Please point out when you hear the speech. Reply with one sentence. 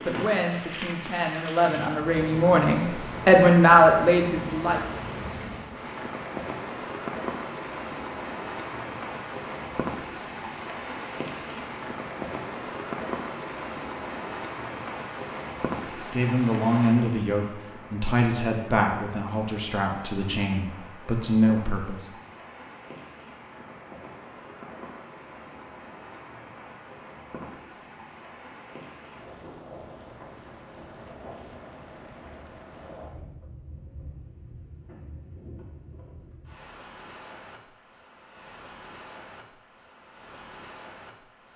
You can hear the speech from 0.1 to 4.8 s and from 15.9 to 22.1 s.